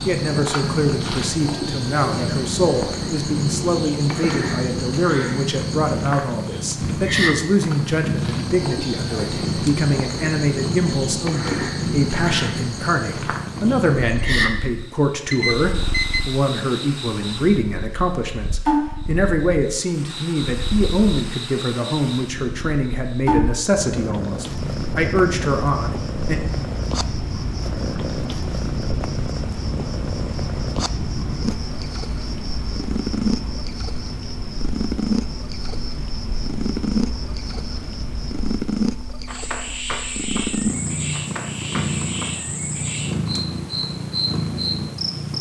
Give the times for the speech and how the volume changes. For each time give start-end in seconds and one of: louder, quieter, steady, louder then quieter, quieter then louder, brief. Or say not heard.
0.1-26.4 steady.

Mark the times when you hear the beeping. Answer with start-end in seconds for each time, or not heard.
15.3-16.2.